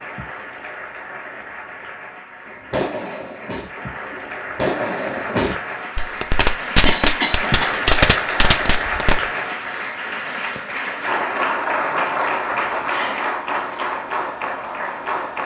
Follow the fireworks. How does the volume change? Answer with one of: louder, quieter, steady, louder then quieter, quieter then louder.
louder.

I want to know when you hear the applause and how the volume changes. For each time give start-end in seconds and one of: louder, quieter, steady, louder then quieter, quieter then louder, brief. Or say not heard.
0.0-15.4 louder.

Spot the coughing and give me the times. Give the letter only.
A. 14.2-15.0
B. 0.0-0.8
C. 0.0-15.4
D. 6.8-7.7
D.